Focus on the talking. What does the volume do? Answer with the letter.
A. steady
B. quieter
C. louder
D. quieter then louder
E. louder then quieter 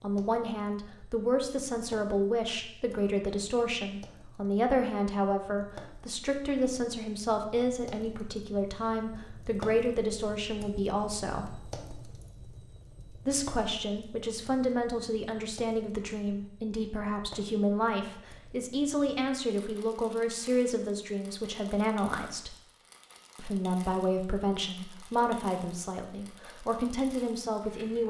A.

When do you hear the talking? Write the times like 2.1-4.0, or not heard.
0.0-11.6, 13.2-22.6, 23.4-28.0.